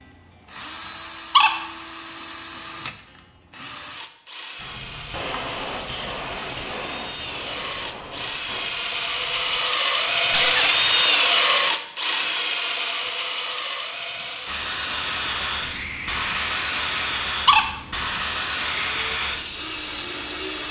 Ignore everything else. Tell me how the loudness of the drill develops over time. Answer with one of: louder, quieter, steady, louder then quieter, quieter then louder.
louder then quieter.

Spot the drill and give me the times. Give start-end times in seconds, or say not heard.
0.0-20.6.